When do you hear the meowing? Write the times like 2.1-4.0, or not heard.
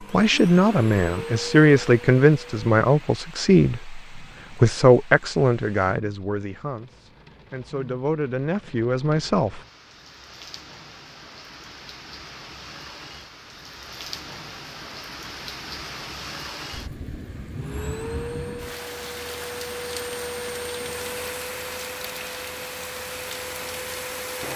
not heard.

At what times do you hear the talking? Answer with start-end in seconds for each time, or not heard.
0.1-9.6.